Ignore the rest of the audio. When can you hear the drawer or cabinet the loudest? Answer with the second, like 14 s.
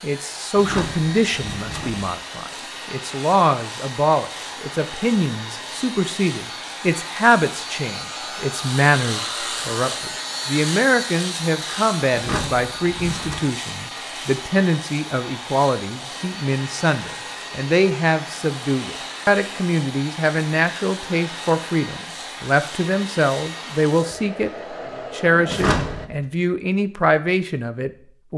26 s.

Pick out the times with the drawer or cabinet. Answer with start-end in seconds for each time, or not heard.
0.6-2.0, 12.1-13.4, 25.4-26.2.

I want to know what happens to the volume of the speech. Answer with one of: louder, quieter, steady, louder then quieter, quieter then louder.
steady.